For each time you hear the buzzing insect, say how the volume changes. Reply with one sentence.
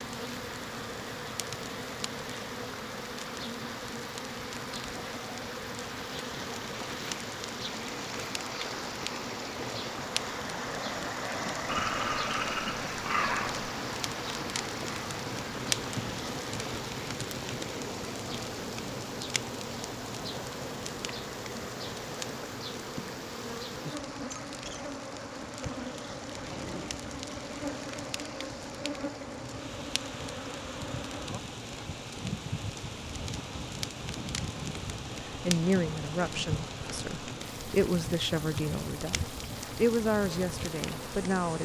The buzzing insect can be heard from 0.0 to 41.6 s, at a steady volume.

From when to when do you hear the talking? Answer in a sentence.
You can hear the talking from 35.5 to 41.6 s.